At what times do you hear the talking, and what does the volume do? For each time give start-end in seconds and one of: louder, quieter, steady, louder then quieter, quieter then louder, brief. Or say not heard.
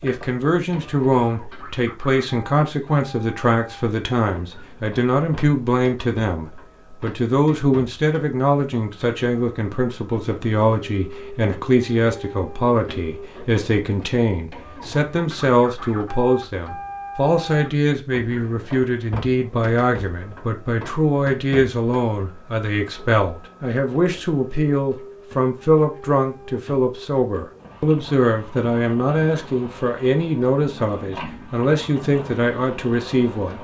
0.0-33.5 steady.